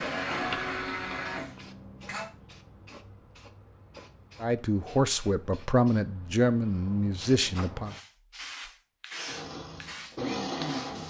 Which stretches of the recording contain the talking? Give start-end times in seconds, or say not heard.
4.4-8.0.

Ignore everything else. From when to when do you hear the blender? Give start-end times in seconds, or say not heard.
0.0-2.2, 9.1-11.0.